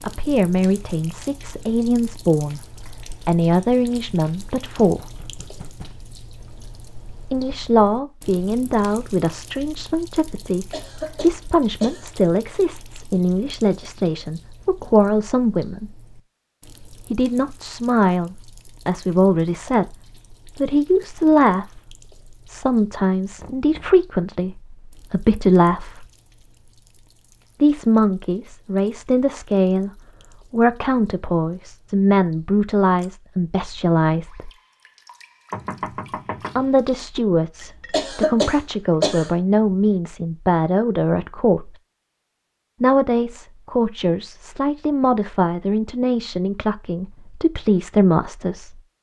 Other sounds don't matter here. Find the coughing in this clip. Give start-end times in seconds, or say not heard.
10.7-12.1, 37.9-39.3.